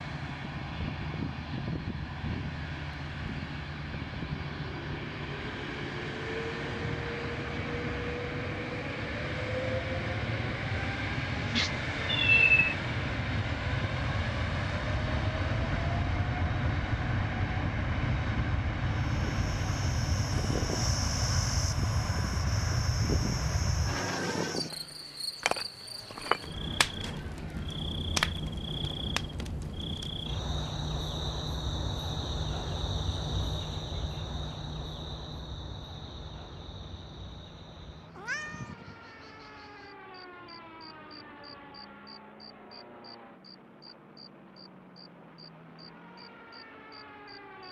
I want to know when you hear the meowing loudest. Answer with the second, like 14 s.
12 s.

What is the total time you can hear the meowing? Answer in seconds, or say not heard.
2 s.